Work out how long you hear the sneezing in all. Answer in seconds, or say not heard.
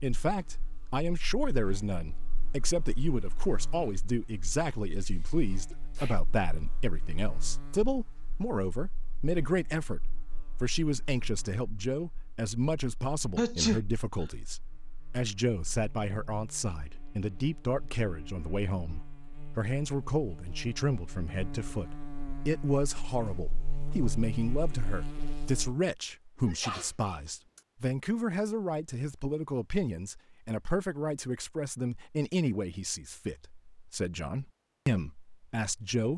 2 s.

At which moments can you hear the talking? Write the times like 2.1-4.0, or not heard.
0.0-36.1.